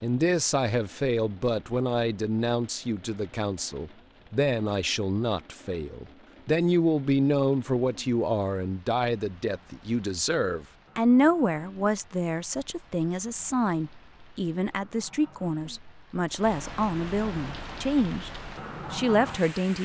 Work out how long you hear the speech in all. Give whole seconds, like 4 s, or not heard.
20 s.